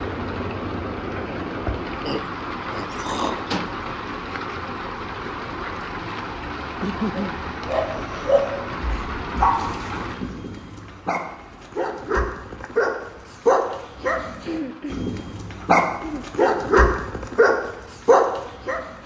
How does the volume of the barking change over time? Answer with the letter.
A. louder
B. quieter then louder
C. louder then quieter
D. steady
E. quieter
B.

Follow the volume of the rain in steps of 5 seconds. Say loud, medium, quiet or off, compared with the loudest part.
loud, loud, quiet, quiet.